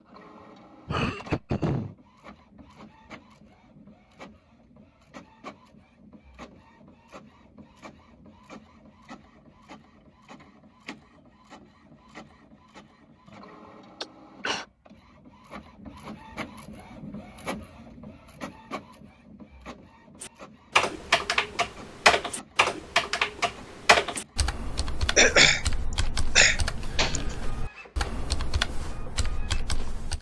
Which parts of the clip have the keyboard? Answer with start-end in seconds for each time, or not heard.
20.2-30.1.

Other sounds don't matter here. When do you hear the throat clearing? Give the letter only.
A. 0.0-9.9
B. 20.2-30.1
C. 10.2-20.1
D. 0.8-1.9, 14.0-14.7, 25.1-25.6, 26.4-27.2
D.